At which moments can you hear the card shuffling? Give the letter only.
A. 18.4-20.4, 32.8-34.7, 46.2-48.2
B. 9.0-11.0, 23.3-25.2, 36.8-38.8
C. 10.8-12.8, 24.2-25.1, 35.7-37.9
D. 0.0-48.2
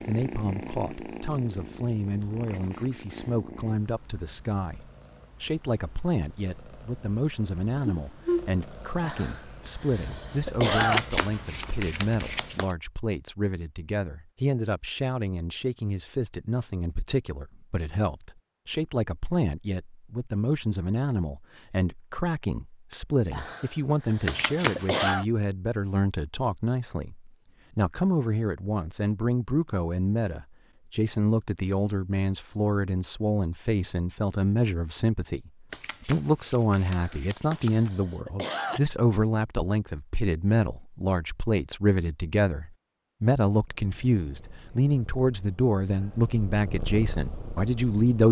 C.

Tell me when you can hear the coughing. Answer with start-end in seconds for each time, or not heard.
9.0-11.0, 23.3-25.2, 36.8-38.8.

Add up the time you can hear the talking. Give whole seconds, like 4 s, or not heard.
48 s.